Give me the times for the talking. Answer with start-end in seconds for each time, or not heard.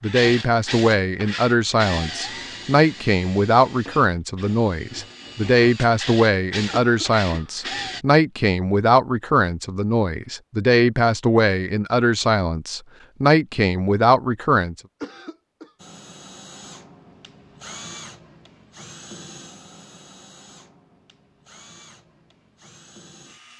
0.0-14.8.